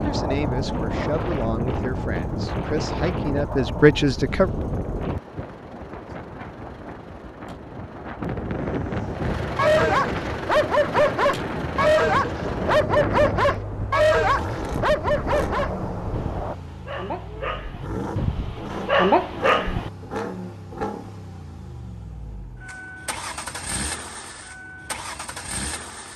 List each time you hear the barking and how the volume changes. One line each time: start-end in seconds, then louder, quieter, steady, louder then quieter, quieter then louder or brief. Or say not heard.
9.6-19.9 quieter then louder.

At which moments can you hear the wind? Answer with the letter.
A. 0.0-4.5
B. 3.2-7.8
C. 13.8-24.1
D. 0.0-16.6
D.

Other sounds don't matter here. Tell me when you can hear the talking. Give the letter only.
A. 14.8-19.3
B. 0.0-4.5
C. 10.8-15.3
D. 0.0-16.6
B.